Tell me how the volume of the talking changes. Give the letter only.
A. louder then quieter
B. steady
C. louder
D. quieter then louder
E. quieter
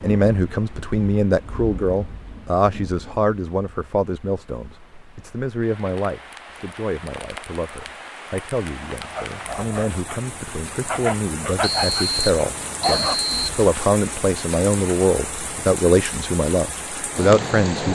D.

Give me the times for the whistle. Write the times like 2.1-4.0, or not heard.
11.6-13.6.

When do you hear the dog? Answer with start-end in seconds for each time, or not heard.
9.0-13.2.